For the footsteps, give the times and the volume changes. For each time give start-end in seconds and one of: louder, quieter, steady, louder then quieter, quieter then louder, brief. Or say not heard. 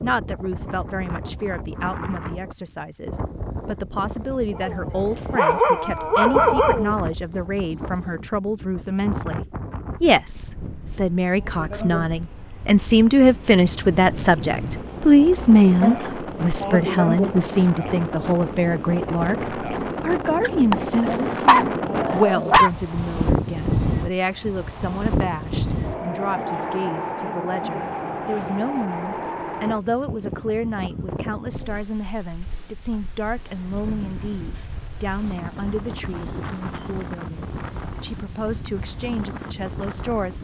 not heard.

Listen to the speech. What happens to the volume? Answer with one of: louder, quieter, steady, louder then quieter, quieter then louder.
louder then quieter.